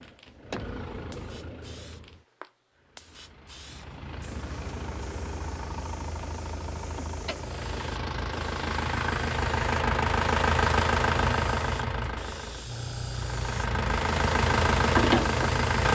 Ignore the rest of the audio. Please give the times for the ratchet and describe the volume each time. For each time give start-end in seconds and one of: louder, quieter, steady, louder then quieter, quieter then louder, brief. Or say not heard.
not heard.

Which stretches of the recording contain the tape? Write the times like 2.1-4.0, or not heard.
not heard.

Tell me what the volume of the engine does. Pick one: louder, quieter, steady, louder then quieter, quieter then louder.
louder.